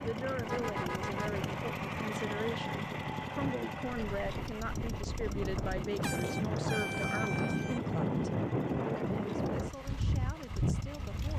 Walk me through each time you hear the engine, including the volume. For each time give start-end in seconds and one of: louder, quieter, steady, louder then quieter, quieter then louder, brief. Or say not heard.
0.0-11.3 quieter.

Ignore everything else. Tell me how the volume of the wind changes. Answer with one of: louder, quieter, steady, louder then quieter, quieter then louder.
louder.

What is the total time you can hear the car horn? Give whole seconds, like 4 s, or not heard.
3 s.